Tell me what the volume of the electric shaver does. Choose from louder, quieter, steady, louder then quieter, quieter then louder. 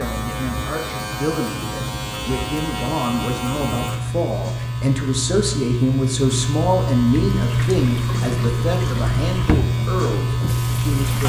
louder.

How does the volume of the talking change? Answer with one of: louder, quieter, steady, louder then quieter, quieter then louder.
louder then quieter.